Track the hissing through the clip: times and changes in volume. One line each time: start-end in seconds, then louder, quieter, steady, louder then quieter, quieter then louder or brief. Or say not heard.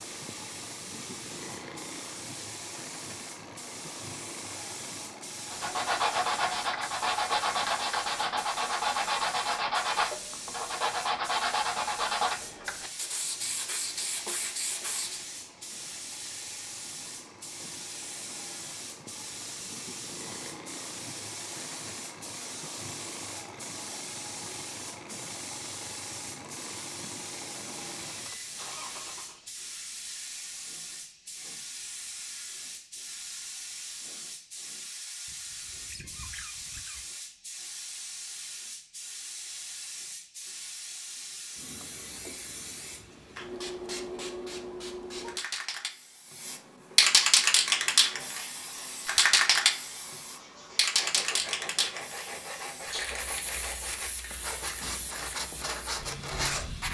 0.0-56.9 louder.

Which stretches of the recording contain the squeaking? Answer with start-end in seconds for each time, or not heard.
35.2-37.0.